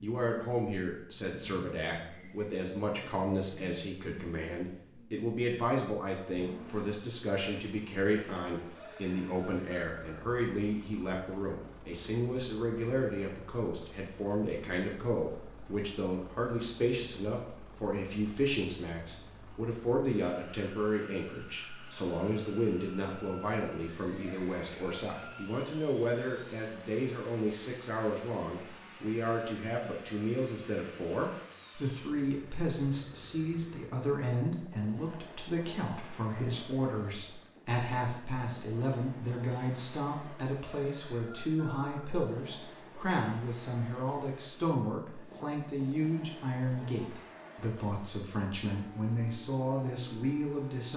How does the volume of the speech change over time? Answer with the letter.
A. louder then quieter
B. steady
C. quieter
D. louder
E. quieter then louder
B.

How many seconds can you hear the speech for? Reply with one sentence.
You can hear the speech for 51 seconds altogether.